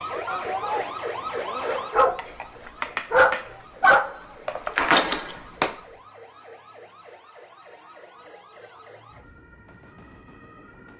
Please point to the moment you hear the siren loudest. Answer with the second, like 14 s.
1 s.